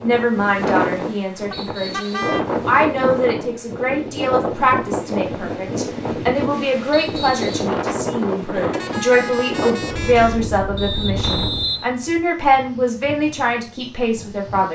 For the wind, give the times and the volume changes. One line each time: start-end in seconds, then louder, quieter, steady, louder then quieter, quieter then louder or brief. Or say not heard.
0.0-14.7 quieter.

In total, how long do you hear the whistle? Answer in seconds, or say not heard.
3 s.